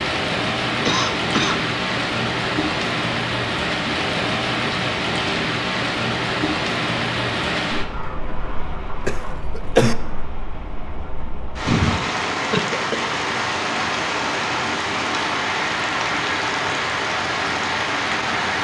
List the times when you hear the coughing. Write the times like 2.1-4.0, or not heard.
0.8-1.6, 9.1-9.9, 12.5-13.1.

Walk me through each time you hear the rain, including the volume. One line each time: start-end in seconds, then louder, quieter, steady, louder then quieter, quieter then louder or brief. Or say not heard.
0.0-18.6 quieter then louder.